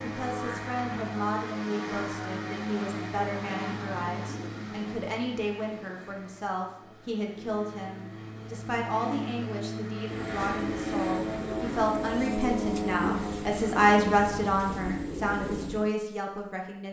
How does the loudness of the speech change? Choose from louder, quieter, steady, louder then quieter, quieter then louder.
louder.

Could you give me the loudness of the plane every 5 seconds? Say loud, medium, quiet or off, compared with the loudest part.
loud, medium, loud, off.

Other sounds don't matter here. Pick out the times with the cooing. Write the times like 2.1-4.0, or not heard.
10.1-15.9.